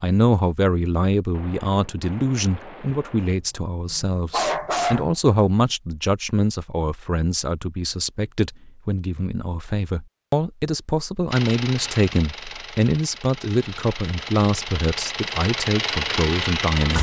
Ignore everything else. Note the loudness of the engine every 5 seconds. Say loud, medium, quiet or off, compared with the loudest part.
off, off, medium, loud.